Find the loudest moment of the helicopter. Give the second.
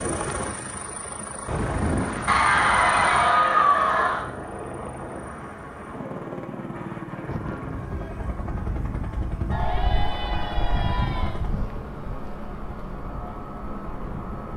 2 s.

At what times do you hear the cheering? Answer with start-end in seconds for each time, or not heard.
2.2-4.2, 9.5-11.4.